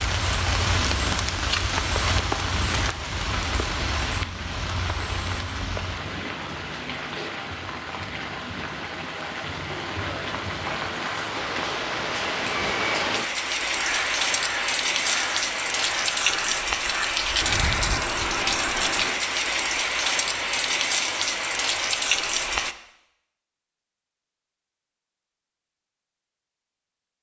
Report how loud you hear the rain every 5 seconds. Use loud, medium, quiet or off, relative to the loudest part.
loud, medium, loud, loud, loud, off.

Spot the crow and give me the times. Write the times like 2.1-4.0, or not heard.
13.8-19.1.